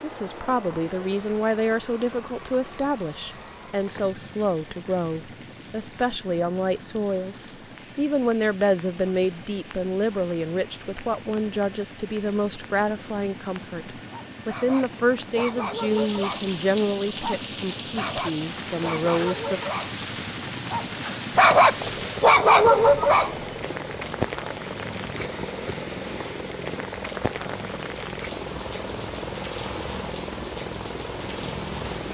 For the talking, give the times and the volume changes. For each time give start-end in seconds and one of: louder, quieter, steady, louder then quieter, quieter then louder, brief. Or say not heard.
0.0-19.6 steady.